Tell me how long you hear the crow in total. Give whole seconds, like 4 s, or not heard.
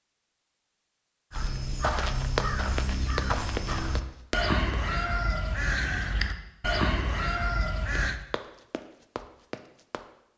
7 s.